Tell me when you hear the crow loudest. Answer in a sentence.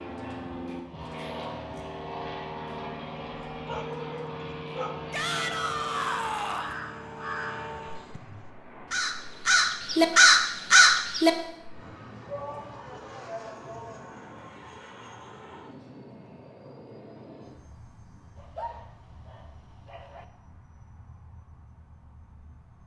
The loudest moment of the crow is at 10 seconds.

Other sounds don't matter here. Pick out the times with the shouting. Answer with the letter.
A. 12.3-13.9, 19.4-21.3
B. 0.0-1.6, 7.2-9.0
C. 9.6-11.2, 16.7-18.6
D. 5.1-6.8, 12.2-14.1
D.